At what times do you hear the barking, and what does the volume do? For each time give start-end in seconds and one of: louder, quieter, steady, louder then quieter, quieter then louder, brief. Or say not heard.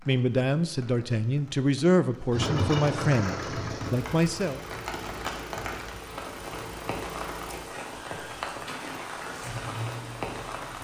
not heard.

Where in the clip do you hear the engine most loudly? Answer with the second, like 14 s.
3 s.